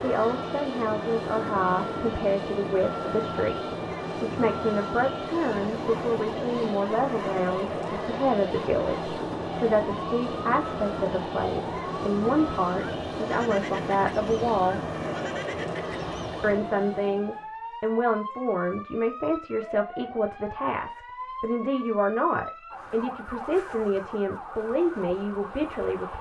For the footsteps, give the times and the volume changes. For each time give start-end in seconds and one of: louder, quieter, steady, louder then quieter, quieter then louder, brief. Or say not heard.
not heard.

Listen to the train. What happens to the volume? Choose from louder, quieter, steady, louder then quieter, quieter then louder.
steady.